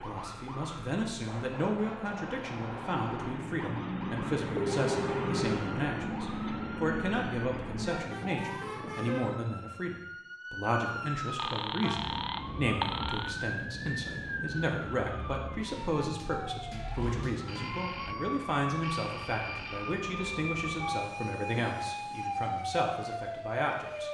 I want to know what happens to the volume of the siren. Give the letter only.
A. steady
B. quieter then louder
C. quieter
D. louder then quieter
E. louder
E.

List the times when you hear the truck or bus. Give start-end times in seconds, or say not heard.
0.0-9.4.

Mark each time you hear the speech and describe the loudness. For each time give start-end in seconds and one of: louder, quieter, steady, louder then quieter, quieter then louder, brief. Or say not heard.
0.0-24.0 steady.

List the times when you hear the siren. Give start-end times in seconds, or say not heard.
0.0-24.0.